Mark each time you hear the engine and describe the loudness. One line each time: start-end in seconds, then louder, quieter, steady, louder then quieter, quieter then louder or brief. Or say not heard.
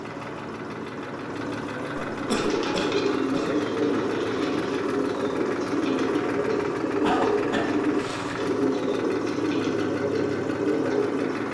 0.0-11.4 steady.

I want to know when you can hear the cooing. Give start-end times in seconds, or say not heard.
2.2-11.4.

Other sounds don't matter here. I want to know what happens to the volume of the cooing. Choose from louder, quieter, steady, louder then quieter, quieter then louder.
steady.